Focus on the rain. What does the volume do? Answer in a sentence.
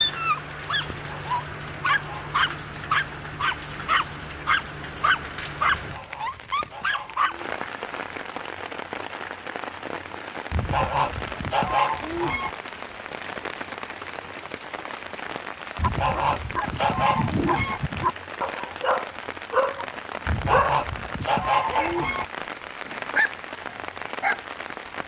The loudness of the rain stays about the same.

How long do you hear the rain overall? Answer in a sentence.
The rain can be heard for 25 seconds in total.